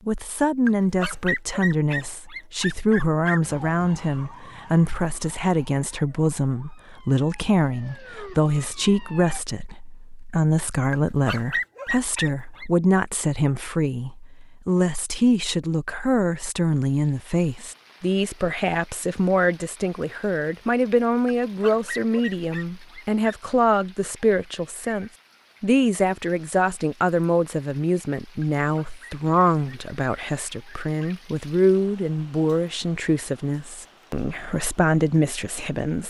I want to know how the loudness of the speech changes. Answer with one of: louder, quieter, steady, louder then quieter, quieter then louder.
steady.